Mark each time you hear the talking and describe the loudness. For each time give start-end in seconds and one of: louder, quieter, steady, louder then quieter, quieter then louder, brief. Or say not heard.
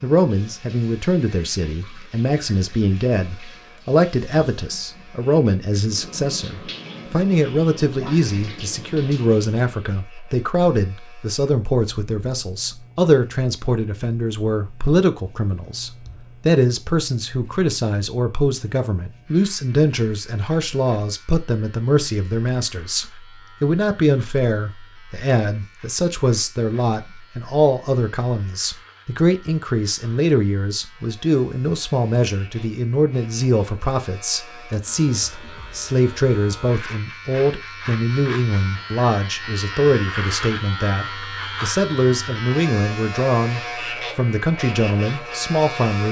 0.0-46.0 steady.